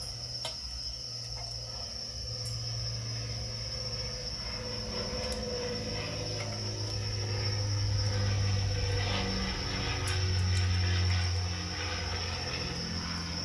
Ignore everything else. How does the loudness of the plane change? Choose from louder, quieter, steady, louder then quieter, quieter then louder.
louder.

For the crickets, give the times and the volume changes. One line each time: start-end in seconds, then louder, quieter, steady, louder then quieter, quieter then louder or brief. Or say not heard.
0.0-13.3 steady.